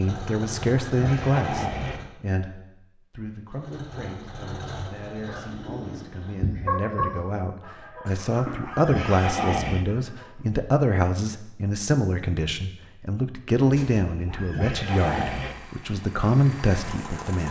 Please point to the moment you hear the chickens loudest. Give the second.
7 s.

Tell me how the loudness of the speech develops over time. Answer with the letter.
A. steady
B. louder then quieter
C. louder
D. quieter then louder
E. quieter
D.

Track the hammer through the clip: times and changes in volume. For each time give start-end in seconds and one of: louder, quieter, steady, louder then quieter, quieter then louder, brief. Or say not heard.
not heard.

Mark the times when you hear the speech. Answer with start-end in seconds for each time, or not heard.
0.0-17.4.